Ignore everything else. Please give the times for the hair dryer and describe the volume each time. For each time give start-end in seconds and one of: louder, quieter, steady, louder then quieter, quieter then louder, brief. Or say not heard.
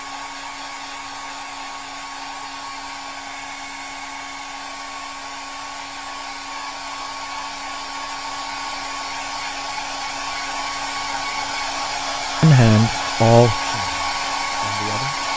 0.0-15.3 louder.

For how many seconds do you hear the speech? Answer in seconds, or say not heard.
3 s.